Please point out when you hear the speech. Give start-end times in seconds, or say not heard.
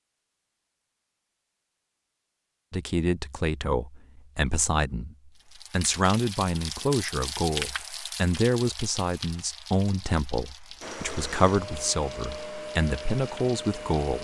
2.7-14.1.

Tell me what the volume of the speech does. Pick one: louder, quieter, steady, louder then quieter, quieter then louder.
steady.